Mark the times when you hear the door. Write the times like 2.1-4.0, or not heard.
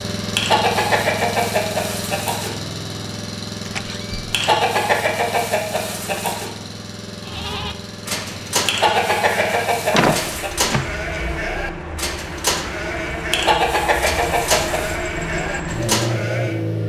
3.6-4.3, 9.9-10.9.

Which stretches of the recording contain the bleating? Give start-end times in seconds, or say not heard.
7.2-16.6.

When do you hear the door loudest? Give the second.
10 s.